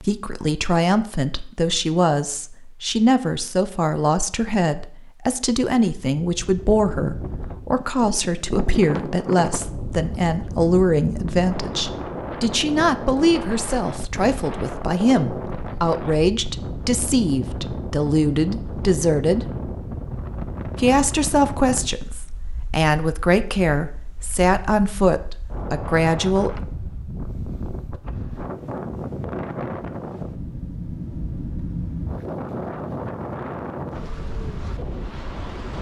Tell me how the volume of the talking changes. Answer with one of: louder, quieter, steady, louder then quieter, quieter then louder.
steady.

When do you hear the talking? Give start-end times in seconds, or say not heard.
0.0-19.5, 20.8-26.6.